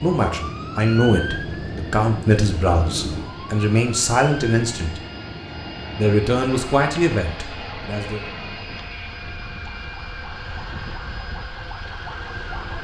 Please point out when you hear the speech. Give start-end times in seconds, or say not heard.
0.0-5.0, 6.0-8.2.